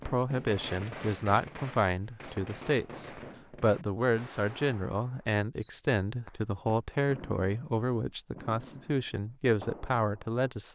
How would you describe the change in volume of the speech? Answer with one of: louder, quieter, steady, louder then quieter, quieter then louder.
steady.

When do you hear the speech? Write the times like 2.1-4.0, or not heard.
0.1-10.7.